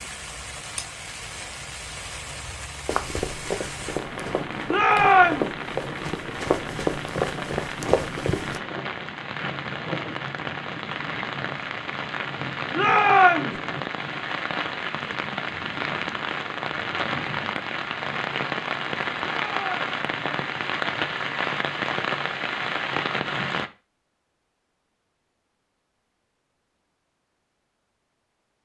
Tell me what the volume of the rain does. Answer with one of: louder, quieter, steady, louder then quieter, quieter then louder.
louder.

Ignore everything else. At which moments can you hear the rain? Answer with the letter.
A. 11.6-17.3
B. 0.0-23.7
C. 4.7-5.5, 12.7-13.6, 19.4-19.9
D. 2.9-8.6
B.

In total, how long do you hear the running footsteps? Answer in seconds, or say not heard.
6 s.